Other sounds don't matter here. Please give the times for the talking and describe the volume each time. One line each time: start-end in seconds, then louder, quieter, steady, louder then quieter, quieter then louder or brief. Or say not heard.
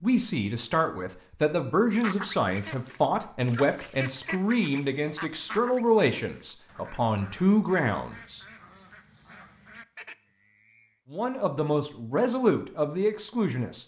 0.0-8.4 steady
11.1-13.8 brief.